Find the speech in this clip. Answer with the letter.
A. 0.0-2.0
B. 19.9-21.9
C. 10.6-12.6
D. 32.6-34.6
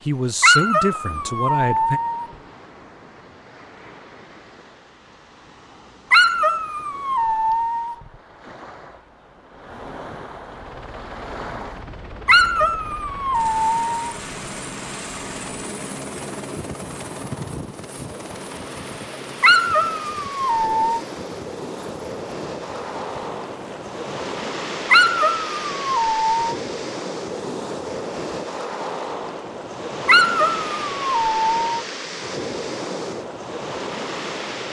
A.